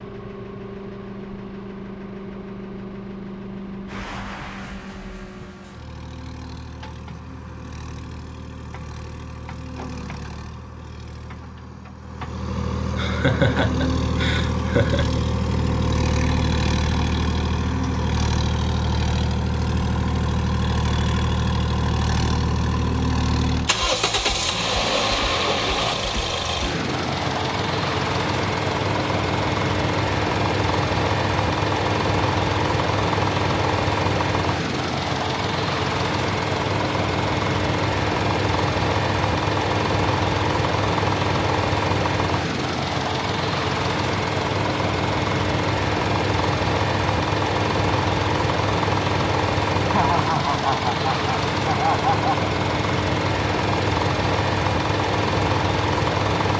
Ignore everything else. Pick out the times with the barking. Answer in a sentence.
You can't hear the barking here.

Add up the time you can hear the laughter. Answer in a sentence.
You can hear the laughter for 5 seconds altogether.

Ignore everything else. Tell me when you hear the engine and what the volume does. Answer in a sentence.
The engine can be heard from 0.0 to 56.5 s, getting louder.